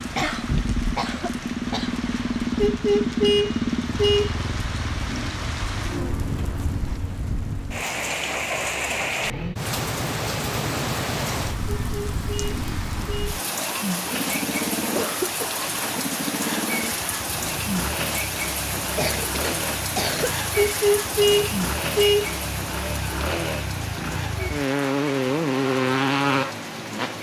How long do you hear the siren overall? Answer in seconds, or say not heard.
not heard.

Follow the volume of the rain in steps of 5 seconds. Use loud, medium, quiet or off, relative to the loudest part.
medium, loud, loud, loud, loud, medium.